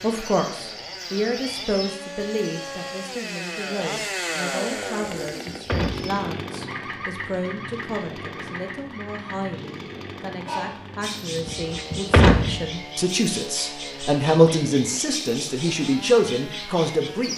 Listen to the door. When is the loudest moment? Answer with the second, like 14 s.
12 s.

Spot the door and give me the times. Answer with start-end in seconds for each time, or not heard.
5.2-6.2, 11.4-12.7.